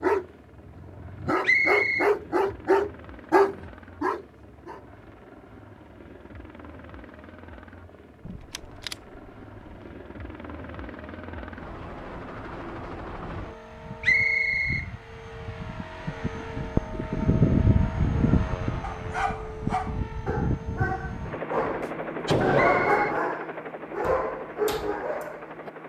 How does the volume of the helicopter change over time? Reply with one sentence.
The volume of the helicopter goes up, then down.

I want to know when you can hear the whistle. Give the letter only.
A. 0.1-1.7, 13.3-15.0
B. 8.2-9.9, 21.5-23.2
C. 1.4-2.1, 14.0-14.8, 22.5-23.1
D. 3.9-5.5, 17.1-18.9
C.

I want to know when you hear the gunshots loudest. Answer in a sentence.
The loudest moment of the gunshots is at 22 seconds.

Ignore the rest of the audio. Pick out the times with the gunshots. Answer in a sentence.
The gunshots can be heard from 8.2 to 9.9 s and from 21.5 to 23.2 s.